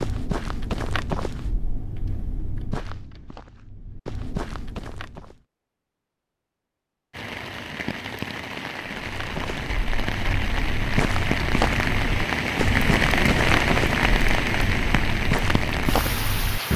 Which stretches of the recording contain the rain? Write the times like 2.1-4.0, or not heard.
7.1-16.7.